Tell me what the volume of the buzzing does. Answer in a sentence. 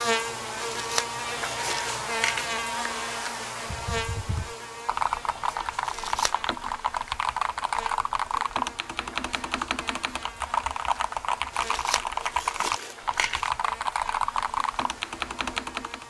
The loudness of the buzzing goes down.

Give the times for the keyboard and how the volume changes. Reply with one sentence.
The keyboard can be heard from 3.6 to 16.0 s, at a steady volume.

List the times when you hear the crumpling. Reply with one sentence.
The crumpling can be heard from 0.6 to 2.5 s, from 5.8 to 6.4 s and from 11.5 to 13.5 s.